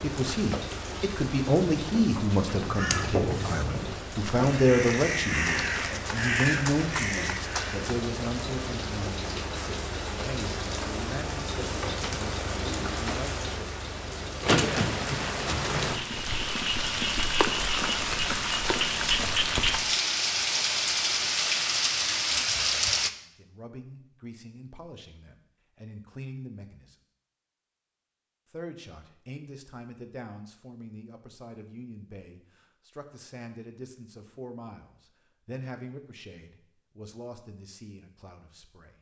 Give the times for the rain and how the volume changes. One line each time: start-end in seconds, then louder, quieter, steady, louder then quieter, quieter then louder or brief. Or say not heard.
0.0-23.1 louder.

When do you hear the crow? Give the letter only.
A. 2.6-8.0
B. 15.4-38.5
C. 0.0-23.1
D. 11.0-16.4
A.